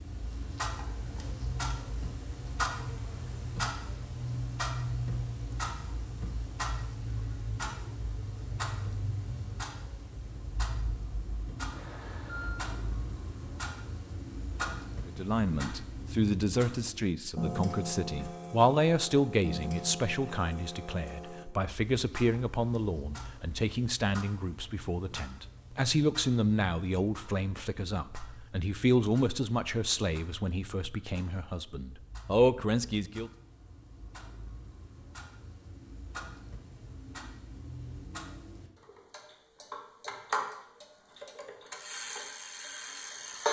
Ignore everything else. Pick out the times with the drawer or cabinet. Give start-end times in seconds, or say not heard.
not heard.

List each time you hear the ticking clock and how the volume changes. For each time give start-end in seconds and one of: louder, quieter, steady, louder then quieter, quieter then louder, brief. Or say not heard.
0.0-43.4 quieter then louder.